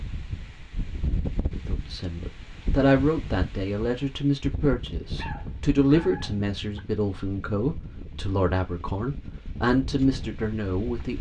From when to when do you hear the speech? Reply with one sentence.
The speech can be heard from 1.6 to 11.1 s.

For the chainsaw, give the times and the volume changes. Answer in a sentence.
You can't hear the chainsaw here.